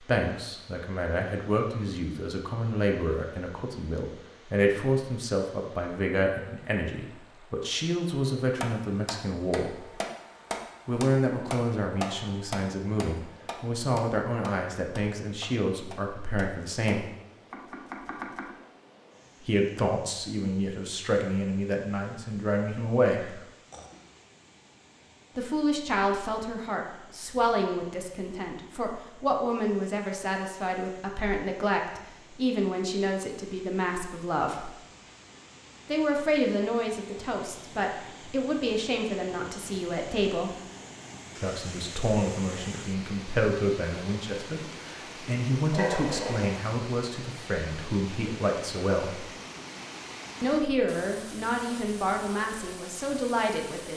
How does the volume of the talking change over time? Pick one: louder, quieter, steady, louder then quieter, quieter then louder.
steady.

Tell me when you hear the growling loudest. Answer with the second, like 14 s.
46 s.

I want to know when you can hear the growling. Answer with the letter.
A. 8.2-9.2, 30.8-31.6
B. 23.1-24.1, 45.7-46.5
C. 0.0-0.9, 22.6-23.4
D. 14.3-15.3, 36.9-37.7
B.